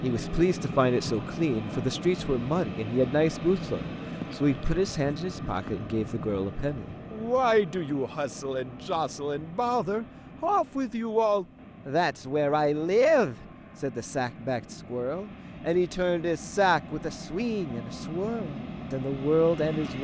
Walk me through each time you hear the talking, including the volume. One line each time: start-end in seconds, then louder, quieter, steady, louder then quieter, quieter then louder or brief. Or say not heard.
0.0-19.9 steady.